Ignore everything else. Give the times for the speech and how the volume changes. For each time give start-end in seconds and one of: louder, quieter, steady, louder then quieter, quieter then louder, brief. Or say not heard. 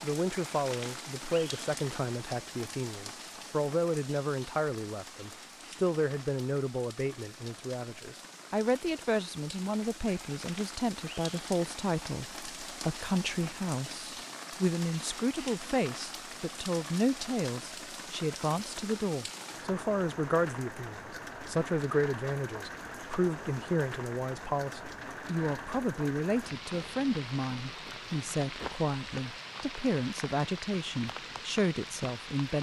0.0-32.5 steady.